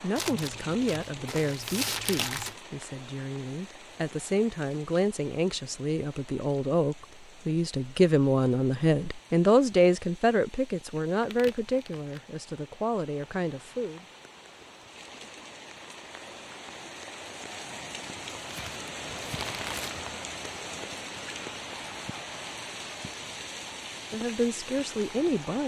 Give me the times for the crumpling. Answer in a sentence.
You can hear the crumpling from 0.1 to 2.5 s, from 11.2 to 12.2 s and from 18.4 to 20.1 s.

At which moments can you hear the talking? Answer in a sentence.
The talking can be heard from 0.0 to 14.1 s and from 24.1 to 25.6 s.